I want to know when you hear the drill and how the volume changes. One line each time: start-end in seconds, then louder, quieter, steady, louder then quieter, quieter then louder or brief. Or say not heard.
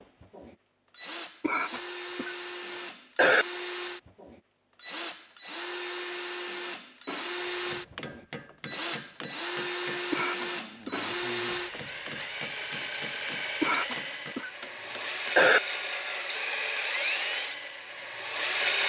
0.0-18.8 louder.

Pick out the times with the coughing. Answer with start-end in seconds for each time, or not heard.
1.4-3.5, 10.1-11.0, 13.6-15.6.